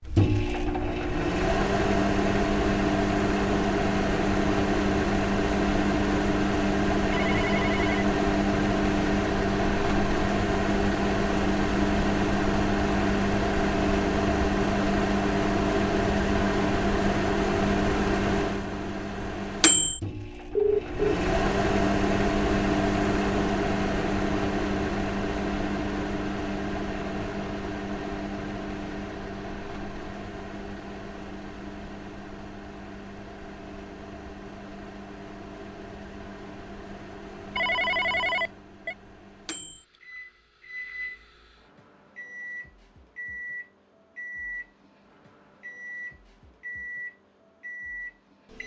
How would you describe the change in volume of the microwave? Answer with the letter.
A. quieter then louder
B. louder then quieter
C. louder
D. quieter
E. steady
D.